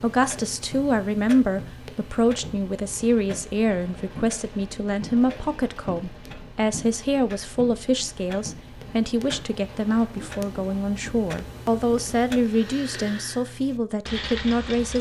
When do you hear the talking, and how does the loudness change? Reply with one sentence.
You can hear the talking from 0.0 to 14.9 s, at a steady volume.